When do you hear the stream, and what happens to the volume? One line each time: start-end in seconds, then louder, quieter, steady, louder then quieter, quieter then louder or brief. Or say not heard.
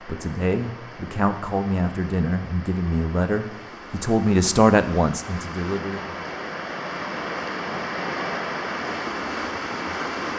0.0-10.3 louder.